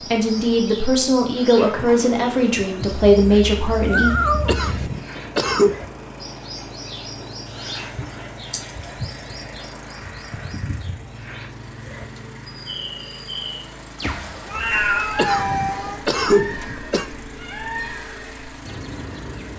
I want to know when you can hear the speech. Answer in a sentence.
You can hear the speech from 0.1 to 4.1 s.